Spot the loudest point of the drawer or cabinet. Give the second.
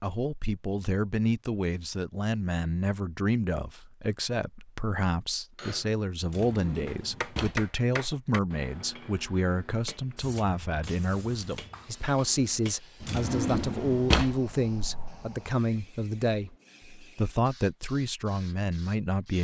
14 s.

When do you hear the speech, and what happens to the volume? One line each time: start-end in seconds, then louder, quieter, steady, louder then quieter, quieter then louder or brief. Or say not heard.
0.0-19.3 steady.